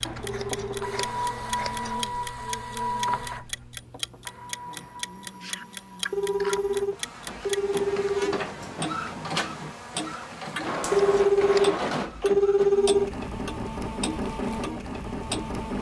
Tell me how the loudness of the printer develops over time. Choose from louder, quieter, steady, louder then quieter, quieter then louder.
quieter then louder.